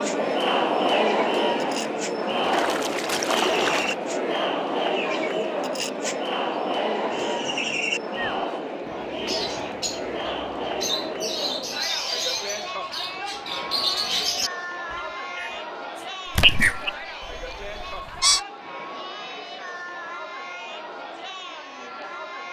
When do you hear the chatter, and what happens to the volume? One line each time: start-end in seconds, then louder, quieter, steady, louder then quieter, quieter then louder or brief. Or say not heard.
0.0-22.4 quieter.